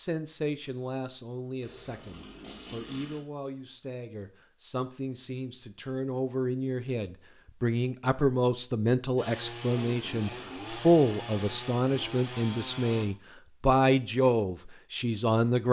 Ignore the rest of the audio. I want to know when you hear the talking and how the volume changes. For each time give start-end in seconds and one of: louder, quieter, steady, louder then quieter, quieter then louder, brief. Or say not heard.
0.0-15.6 louder.